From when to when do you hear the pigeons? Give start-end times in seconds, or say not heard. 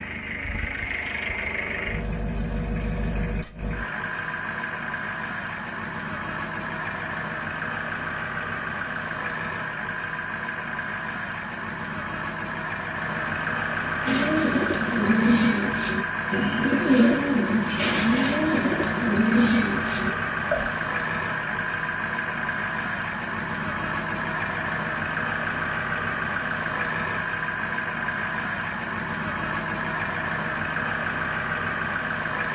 14.1-20.7.